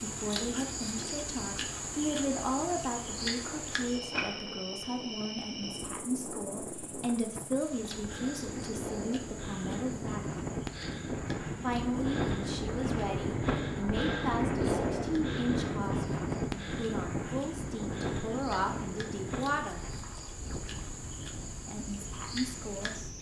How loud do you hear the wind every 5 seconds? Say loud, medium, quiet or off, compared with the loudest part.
quiet, medium, loud, loud, quiet.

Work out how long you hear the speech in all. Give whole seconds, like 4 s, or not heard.
20 s.